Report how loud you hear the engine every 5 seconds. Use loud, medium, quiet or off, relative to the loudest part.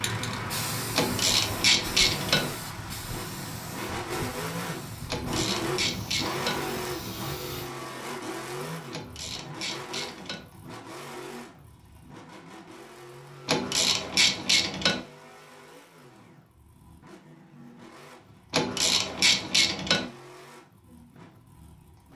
loud, loud, medium, quiet, quiet.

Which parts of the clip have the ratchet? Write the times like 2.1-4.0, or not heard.
0.9-2.5, 5.0-6.7, 8.9-10.4, 13.4-15.0, 18.5-20.1.